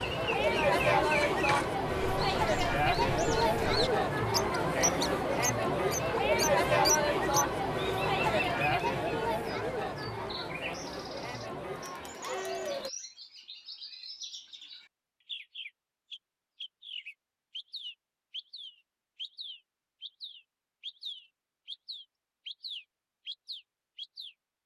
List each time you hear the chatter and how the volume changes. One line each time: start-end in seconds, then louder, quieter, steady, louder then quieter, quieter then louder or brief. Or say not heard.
0.0-12.9 quieter.